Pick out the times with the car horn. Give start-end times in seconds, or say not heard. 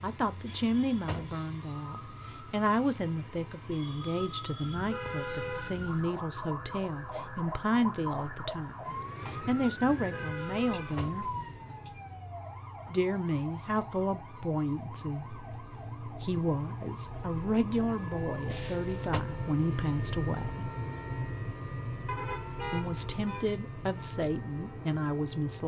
4.6-6.1, 9.8-11.8, 22.1-23.6.